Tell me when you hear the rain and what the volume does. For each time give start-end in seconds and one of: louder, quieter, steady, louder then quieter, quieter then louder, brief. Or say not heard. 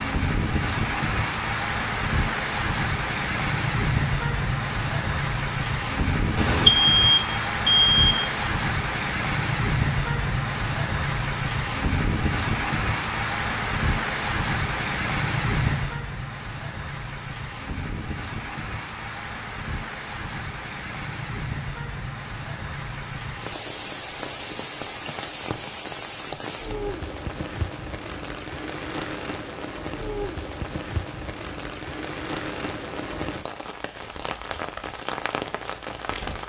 0.0-36.4 quieter.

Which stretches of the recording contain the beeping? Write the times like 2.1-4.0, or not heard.
6.3-8.3.